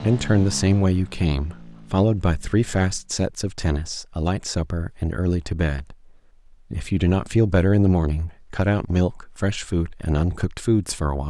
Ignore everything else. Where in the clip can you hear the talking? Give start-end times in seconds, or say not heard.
0.0-6.0, 6.7-11.2.